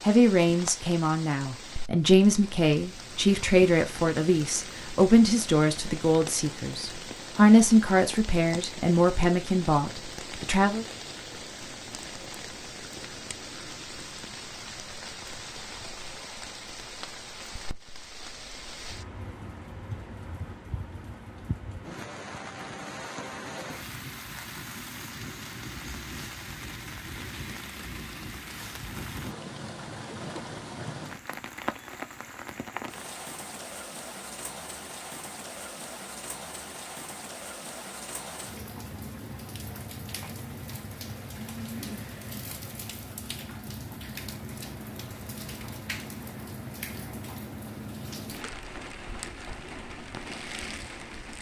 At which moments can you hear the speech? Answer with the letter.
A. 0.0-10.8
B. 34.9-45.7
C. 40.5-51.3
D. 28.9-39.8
A.